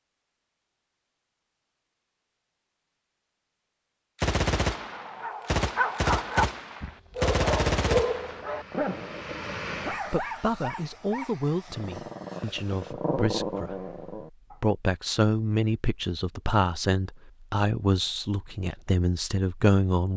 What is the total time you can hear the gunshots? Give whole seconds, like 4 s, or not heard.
4 s.